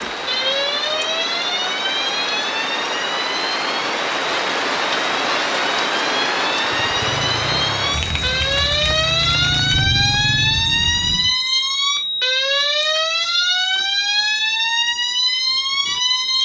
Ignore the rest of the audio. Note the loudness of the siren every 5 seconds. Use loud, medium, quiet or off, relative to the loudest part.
medium, loud, loud, loud.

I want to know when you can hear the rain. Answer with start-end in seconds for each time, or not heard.
0.0-11.4.